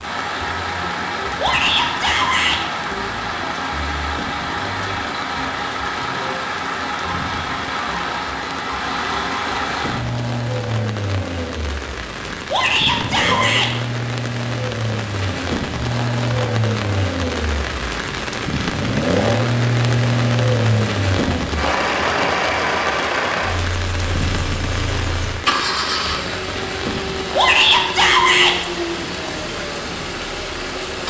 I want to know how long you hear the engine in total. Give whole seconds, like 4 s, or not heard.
31 s.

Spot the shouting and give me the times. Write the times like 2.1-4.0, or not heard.
1.4-2.6, 12.5-13.7, 27.4-28.6.